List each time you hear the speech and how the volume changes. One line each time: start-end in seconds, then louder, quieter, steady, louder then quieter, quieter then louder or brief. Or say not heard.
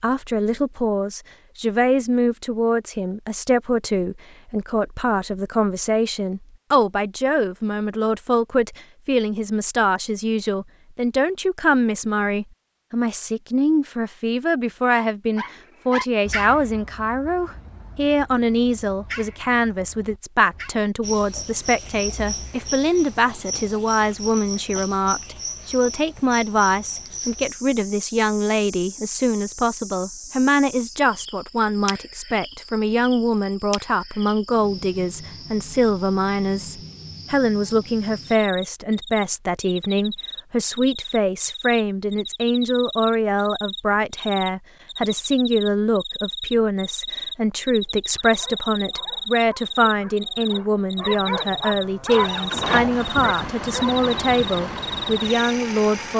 0.0-56.1 steady.